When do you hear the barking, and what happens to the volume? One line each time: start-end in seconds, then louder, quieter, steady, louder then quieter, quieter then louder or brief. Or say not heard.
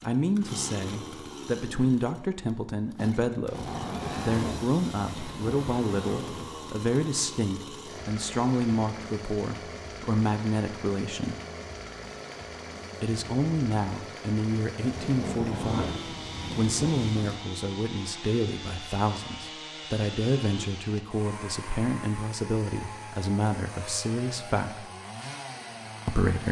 not heard.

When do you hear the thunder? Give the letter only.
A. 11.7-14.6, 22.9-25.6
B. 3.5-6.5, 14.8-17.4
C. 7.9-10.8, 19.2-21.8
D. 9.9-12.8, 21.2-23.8
B.